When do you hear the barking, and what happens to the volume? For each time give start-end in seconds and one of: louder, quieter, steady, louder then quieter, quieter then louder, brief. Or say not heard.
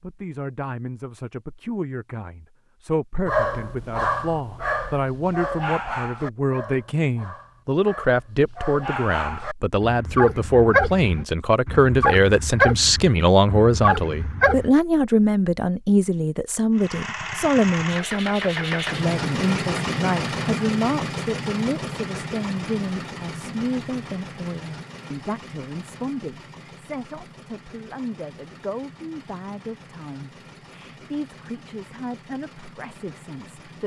3.2-14.7 quieter then louder.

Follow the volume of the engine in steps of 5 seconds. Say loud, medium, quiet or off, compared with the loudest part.
off, off, off, loud, loud, quiet, quiet.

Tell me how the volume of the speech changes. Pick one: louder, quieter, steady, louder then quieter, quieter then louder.
louder then quieter.